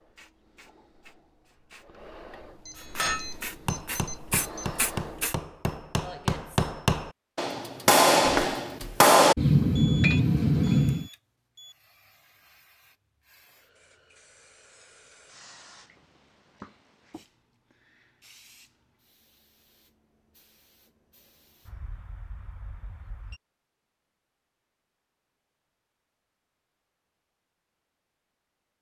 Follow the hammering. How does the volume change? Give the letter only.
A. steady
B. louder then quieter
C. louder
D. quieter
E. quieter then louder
C.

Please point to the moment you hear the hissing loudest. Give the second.
5 s.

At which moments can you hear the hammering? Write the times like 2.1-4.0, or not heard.
2.8-11.1.